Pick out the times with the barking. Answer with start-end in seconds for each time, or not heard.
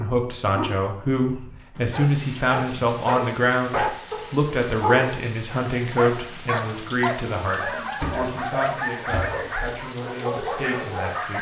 0.0-11.3.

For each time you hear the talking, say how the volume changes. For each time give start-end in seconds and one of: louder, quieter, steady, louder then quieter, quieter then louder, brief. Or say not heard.
0.0-11.3 quieter.